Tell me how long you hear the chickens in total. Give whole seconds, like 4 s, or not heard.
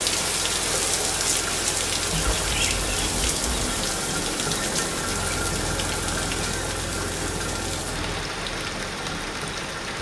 2 s.